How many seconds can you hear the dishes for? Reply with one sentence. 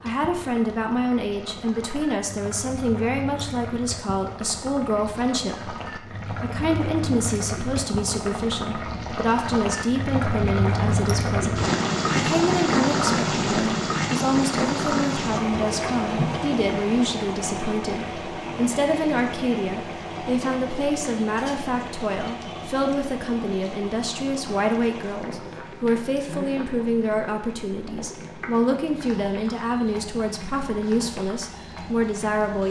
You can't hear the dishes here.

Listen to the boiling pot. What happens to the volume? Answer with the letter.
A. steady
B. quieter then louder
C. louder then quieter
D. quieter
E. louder
C.